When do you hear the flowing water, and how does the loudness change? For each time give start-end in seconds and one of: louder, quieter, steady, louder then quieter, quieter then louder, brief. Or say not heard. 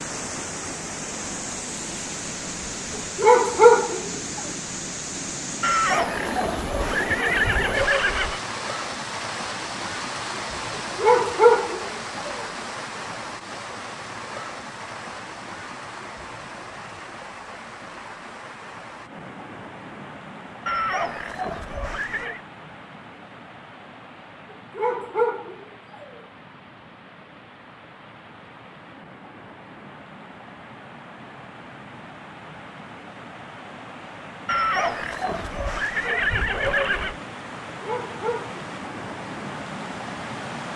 0.0-40.7 quieter then louder.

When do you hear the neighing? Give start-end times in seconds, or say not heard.
5.6-8.4, 20.6-22.4, 34.5-37.2.